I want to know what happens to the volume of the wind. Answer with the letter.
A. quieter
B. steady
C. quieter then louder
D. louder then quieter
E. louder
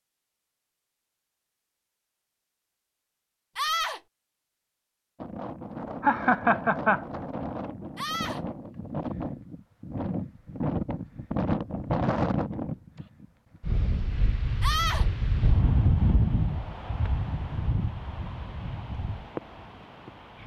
D.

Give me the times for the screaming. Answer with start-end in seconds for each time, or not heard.
3.5-4.0, 8.0-8.4, 14.6-15.1.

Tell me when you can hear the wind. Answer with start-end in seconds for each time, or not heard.
5.2-20.4.